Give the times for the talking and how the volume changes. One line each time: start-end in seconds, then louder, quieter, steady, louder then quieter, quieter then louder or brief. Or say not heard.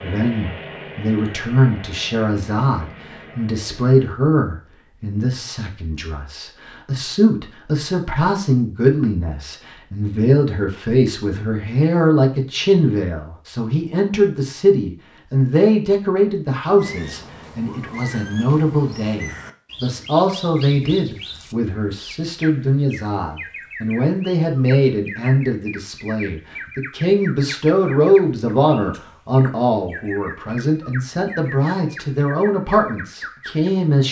0.0-34.0 steady.